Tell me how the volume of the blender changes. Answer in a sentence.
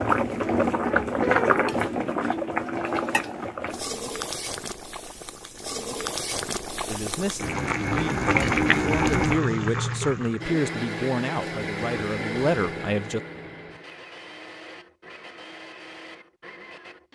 The loudness of the blender goes down.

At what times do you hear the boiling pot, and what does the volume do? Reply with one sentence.
You can hear the boiling pot from 0.0 to 10.5 s, getting quieter then louder.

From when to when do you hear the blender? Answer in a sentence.
You can hear the blender from 10.4 to 17.1 s.